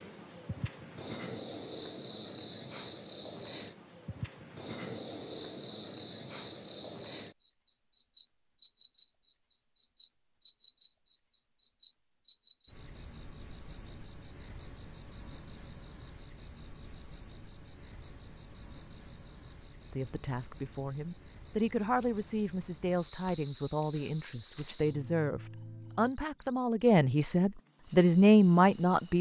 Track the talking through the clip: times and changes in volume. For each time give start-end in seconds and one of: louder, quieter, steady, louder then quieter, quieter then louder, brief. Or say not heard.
19.9-29.1 louder.